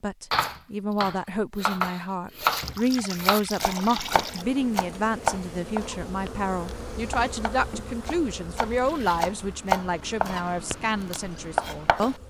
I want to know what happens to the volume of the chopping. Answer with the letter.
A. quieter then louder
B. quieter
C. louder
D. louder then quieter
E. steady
A.